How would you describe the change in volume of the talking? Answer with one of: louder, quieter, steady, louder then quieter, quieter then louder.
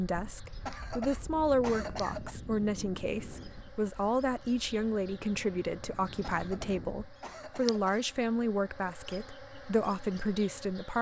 steady.